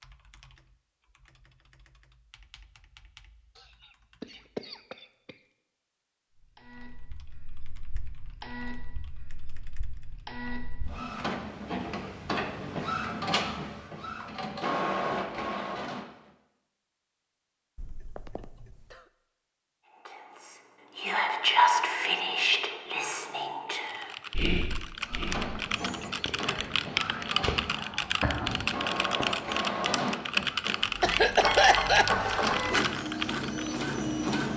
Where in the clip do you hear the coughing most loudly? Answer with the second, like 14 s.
32 s.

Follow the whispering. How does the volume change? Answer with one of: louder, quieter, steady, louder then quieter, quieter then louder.
quieter then louder.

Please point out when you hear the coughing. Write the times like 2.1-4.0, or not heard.
3.5-5.3, 17.8-19.1, 31.0-32.1.